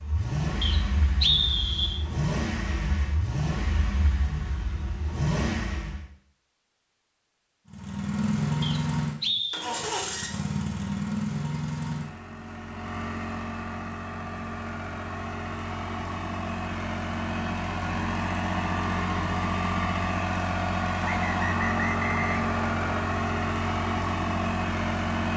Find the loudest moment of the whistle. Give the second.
1 s.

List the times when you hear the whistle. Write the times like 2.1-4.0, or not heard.
0.6-2.0, 8.6-9.7, 21.0-22.8.